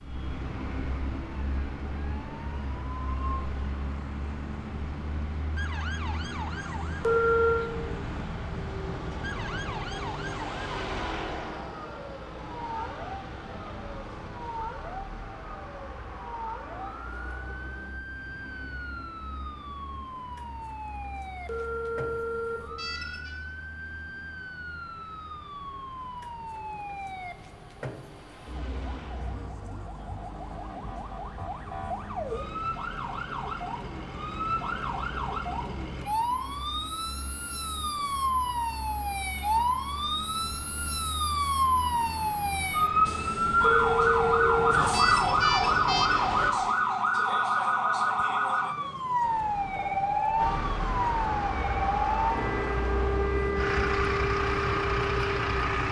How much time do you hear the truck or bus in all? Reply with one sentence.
The truck or bus can be heard for 53 seconds in total.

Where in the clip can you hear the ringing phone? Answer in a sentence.
You can hear the ringing phone from 7.0 to 7.7 s, from 21.4 to 23.4 s and from 43.6 to 46.1 s.